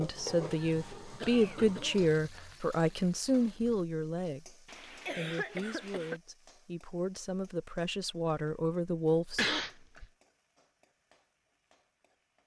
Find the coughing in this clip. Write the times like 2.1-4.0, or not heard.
0.1-2.1, 4.2-6.2, 8.8-10.1.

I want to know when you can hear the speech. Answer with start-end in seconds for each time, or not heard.
0.0-9.4.